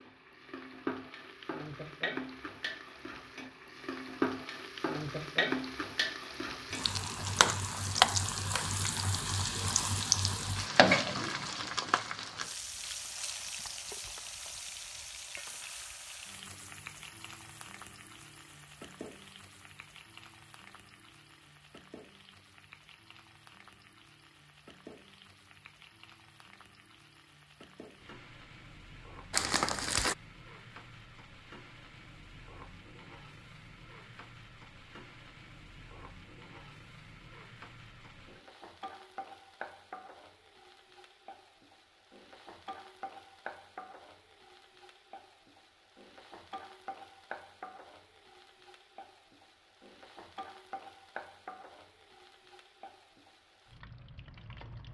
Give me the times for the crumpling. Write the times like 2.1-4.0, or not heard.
29.3-30.1.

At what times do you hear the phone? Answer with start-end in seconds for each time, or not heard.
not heard.